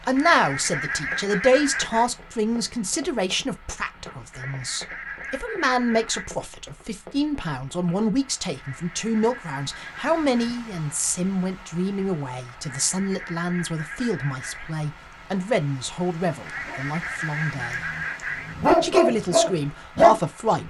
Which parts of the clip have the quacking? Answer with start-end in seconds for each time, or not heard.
0.1-2.1, 4.3-6.3, 8.6-10.6, 12.6-14.8, 16.4-18.6.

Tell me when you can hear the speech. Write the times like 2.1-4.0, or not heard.
0.0-17.9, 18.8-20.6.